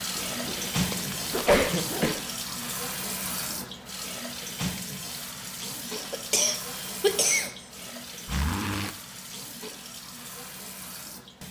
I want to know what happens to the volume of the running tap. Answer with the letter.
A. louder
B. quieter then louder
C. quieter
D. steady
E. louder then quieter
C.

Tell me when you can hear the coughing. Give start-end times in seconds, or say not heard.
1.3-2.1, 5.9-7.5.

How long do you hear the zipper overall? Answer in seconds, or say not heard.
3 s.